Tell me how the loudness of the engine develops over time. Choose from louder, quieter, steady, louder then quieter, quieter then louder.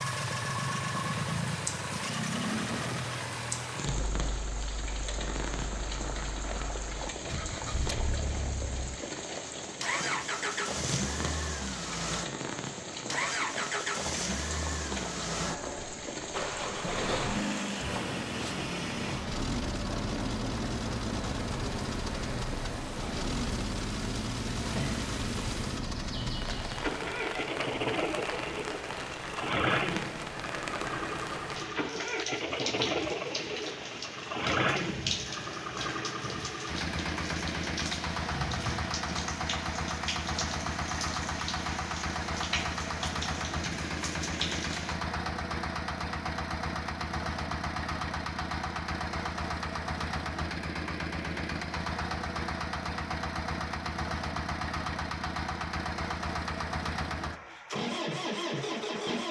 steady.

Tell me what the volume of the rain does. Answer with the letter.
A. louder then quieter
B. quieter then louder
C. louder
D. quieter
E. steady
E.